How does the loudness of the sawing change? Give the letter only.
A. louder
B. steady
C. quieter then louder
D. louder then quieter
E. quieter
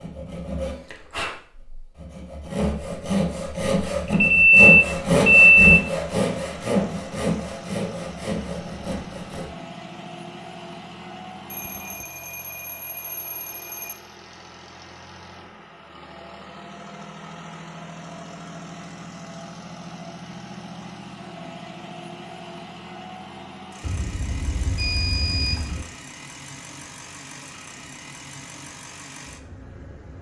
D.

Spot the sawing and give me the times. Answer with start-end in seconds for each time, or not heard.
0.0-9.6.